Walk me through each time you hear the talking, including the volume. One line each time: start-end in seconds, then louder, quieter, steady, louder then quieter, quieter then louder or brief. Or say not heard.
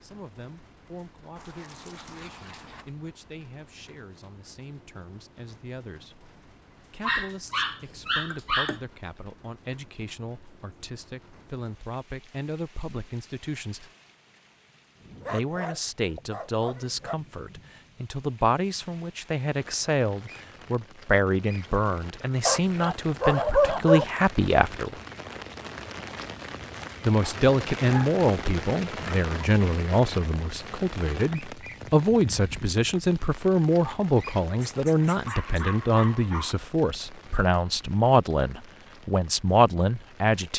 0.0-13.9 louder
15.3-24.9 louder
27.1-40.5 steady.